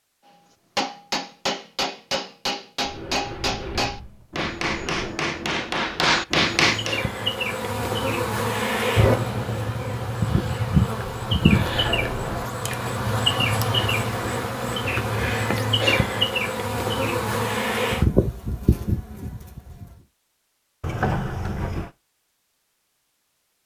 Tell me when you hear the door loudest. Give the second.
21 s.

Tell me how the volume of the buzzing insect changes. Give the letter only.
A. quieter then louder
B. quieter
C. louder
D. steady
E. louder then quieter
D.